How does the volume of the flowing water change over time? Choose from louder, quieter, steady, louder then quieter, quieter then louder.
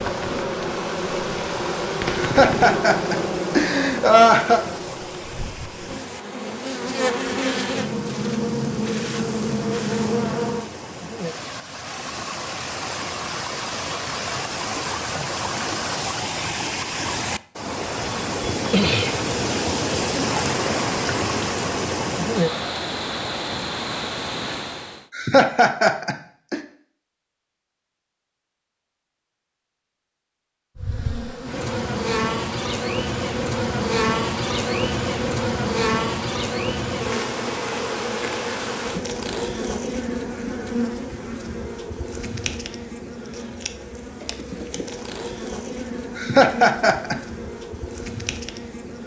louder.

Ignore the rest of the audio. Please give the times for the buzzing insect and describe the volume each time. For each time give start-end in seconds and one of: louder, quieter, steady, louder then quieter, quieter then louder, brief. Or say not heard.
0.0-10.7 quieter then louder
30.8-49.0 quieter.